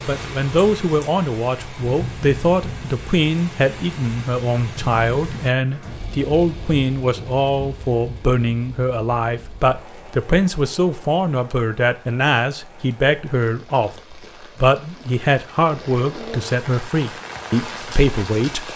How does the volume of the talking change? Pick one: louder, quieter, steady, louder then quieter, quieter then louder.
steady.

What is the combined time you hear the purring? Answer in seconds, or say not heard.
not heard.